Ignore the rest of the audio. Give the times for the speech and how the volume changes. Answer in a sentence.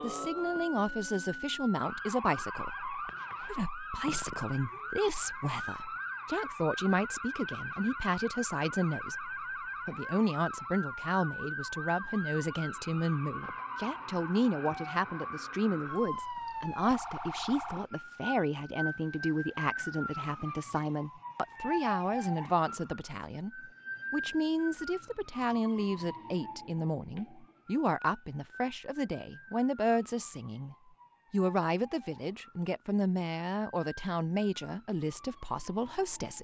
The speech can be heard from 0.0 to 36.3 s, at a steady volume.